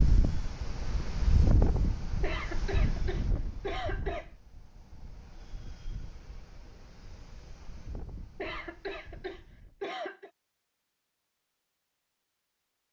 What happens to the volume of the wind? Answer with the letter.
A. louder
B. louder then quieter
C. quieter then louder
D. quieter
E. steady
D.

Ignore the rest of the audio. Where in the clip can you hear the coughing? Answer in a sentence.
You can hear the coughing from 2.2 to 4.3 s and from 8.3 to 10.3 s.